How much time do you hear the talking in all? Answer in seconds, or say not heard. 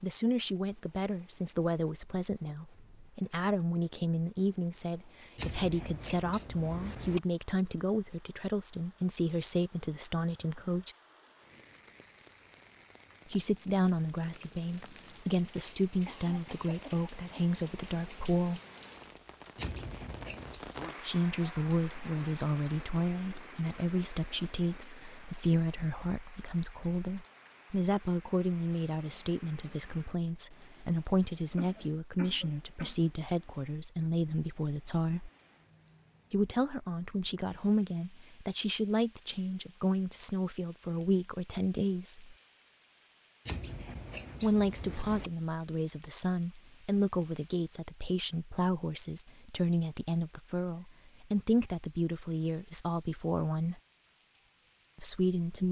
47 s.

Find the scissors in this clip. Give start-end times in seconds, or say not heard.
5.3-7.2, 19.6-20.6, 43.5-45.3.